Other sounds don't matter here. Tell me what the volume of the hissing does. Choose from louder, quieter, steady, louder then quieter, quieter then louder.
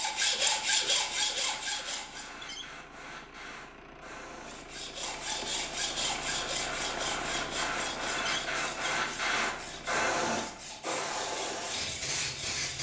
louder.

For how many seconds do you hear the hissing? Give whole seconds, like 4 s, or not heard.
13 s.